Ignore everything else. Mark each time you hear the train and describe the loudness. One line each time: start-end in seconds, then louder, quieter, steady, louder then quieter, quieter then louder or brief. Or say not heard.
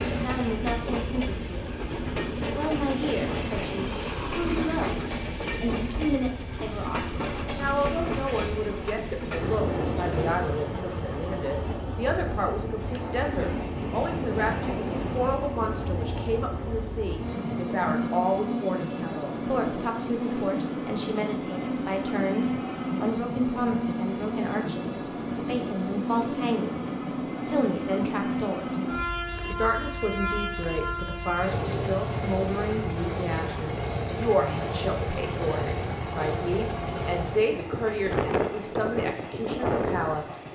0.0-40.5 steady.